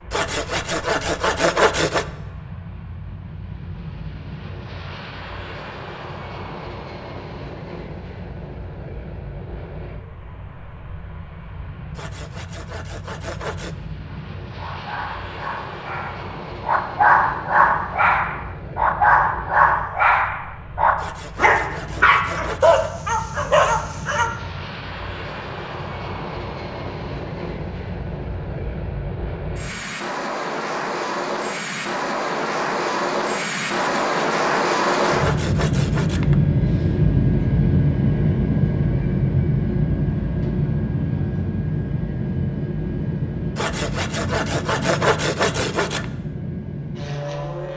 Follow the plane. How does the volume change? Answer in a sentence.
The volume of the plane goes up.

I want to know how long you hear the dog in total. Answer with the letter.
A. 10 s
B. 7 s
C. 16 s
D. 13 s
A.